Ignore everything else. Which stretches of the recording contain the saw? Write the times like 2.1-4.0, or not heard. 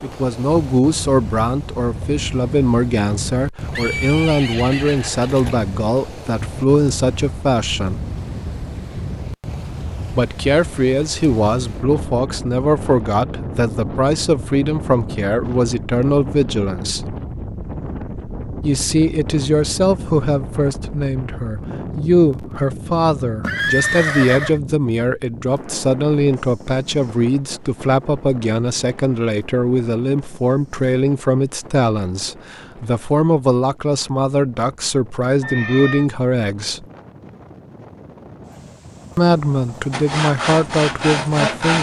39.9-41.7.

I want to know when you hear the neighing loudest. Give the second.
24 s.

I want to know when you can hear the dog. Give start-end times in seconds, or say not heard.
not heard.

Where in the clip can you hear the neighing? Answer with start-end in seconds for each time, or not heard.
3.7-5.6, 23.4-24.6, 35.4-36.0.